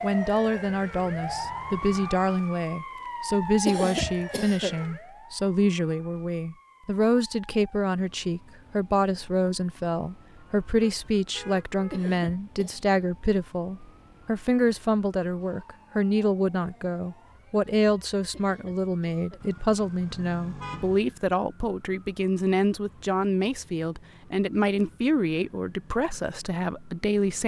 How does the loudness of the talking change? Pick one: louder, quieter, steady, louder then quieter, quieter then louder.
steady.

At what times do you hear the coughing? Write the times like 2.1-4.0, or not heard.
3.6-4.8, 11.9-12.8, 18.3-19.4.